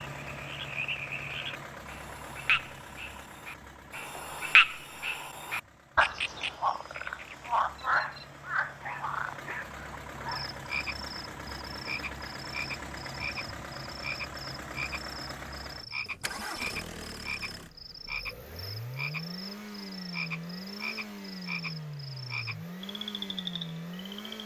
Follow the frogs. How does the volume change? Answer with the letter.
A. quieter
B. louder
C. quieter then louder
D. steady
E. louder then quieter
A.